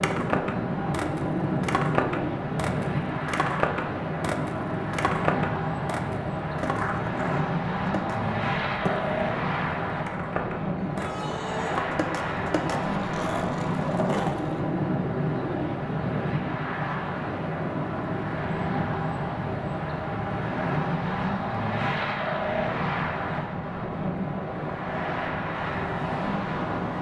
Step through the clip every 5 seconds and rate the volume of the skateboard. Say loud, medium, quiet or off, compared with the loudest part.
loud, loud, loud, off, off, off.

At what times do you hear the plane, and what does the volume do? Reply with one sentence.
You can hear the plane from 0.0 to 26.9 s, at a steady volume.